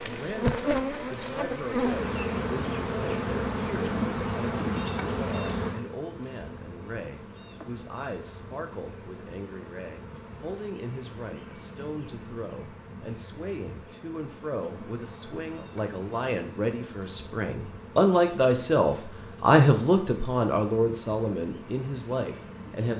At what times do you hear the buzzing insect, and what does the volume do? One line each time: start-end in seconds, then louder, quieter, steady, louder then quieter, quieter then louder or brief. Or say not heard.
0.0-22.9 quieter.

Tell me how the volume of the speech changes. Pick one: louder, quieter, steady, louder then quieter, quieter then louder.
louder.